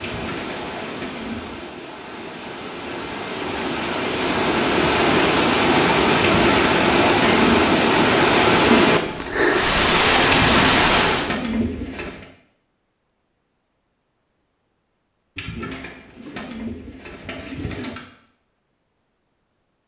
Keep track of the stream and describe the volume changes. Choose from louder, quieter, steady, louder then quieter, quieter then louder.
louder.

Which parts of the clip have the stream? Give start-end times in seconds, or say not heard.
0.0-11.3.